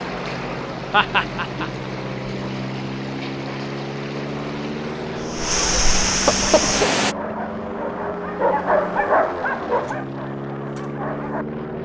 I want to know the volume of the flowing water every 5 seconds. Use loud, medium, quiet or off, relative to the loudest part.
quiet, loud, off.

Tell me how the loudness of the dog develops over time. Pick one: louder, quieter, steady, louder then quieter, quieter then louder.
louder then quieter.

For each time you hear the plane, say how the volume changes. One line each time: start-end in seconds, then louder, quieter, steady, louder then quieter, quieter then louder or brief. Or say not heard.
0.0-11.8 steady.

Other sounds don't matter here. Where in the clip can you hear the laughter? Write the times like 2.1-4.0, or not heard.
0.9-1.9, 6.0-7.3.